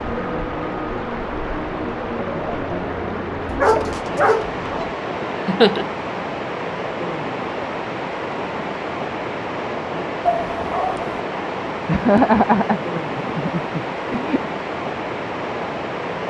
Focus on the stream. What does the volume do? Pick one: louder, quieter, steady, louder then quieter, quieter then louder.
steady.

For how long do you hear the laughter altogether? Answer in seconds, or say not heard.
3 s.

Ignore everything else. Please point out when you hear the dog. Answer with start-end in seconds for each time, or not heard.
3.5-4.9, 10.2-11.1.